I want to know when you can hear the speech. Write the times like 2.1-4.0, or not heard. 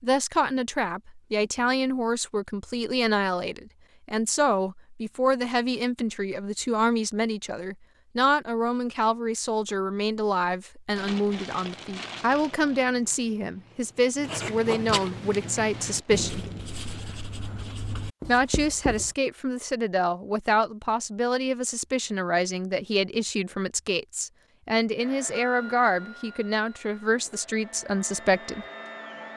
0.0-16.4, 18.2-28.6.